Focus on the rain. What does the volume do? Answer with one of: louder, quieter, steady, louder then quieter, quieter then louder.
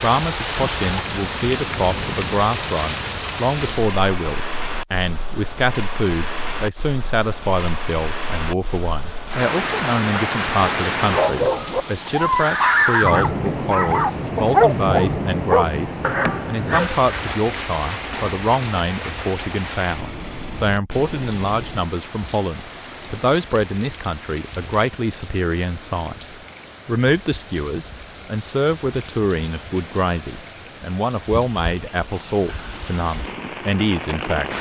quieter.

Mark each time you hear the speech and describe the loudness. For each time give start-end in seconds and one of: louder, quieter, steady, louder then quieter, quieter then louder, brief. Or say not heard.
0.0-34.5 steady.